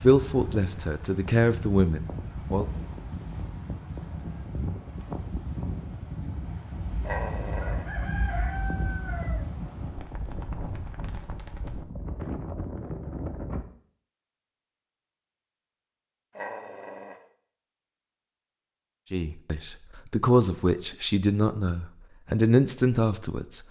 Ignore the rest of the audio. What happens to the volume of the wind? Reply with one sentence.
The volume of the wind stays about the same.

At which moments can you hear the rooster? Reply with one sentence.
The rooster can be heard from 6.8 to 9.4 s.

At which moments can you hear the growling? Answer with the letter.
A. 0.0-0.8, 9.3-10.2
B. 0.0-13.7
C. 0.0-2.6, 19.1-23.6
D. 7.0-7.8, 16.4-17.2
D.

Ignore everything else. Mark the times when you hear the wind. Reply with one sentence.
You can hear the wind from 0.0 to 13.7 s.